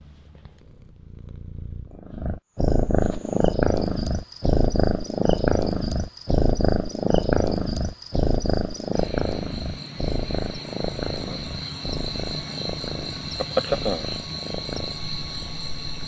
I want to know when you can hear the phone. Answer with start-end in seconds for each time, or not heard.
not heard.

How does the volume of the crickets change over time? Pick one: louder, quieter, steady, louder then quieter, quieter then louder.
louder.